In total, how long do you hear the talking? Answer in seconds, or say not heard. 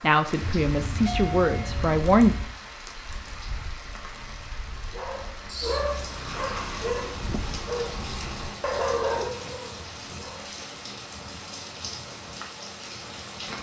2 s.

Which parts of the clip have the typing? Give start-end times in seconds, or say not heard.
not heard.